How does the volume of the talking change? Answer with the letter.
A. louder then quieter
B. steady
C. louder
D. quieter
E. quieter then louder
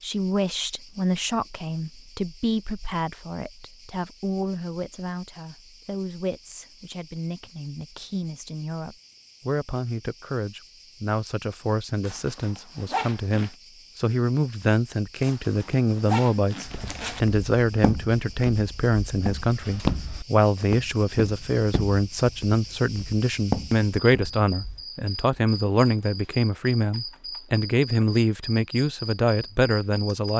C.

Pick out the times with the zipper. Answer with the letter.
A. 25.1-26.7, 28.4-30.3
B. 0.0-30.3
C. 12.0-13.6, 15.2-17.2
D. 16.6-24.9
C.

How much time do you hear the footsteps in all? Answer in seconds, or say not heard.
8 s.